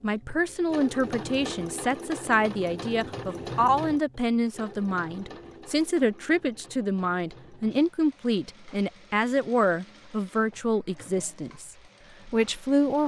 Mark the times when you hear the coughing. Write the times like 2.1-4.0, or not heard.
not heard.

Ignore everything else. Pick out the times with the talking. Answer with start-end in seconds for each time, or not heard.
0.0-13.0.